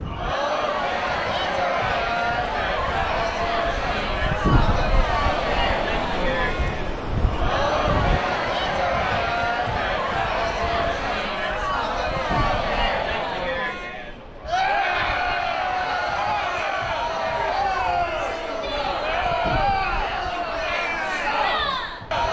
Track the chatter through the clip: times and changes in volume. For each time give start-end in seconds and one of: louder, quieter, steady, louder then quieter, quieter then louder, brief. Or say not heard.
0.0-22.2 steady.